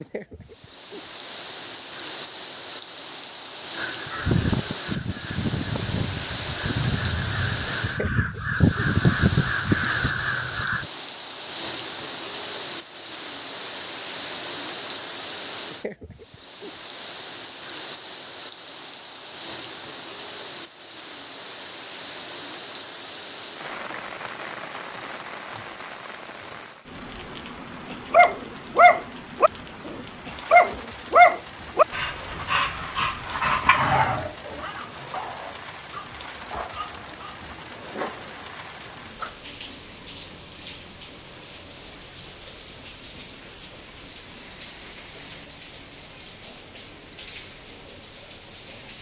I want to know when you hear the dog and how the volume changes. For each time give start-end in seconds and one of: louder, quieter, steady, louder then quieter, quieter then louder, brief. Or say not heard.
27.9-39.5 quieter.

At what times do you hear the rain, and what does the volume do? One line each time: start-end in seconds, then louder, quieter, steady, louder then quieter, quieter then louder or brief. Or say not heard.
0.0-48.9 quieter.